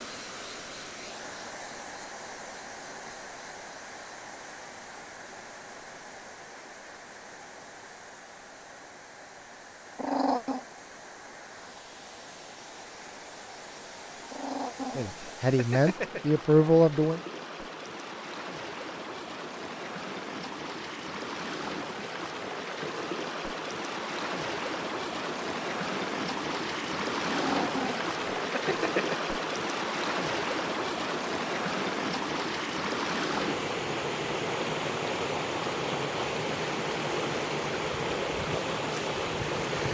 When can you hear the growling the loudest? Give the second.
10 s.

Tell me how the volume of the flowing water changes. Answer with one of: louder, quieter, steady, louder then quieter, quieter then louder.
louder.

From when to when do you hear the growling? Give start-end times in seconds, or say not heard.
9.9-10.7, 14.3-16.2, 27.2-29.2.